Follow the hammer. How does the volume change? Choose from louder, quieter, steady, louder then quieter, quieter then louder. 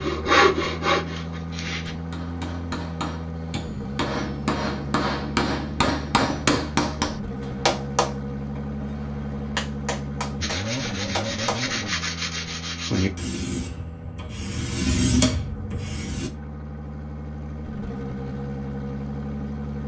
louder then quieter.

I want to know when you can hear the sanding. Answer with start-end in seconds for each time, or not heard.
0.0-1.9, 10.4-16.3.